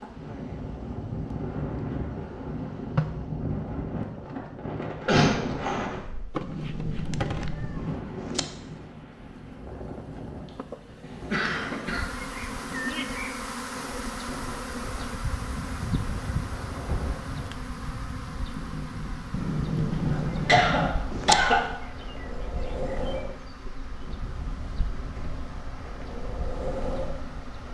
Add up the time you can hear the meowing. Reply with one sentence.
The meowing can be heard for 4 seconds in total.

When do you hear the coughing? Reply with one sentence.
You can hear the coughing from 5.0 to 6.0 s, from 11.1 to 12.1 s and from 20.1 to 21.6 s.